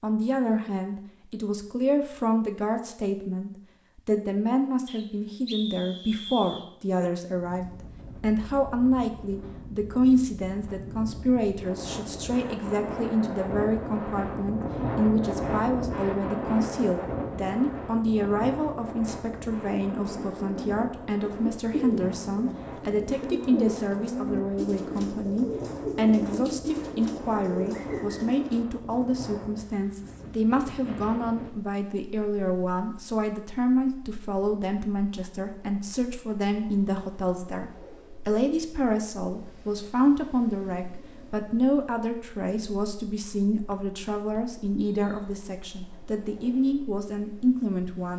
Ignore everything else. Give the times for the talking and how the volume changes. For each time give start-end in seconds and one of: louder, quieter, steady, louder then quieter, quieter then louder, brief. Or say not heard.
0.0-48.1 steady.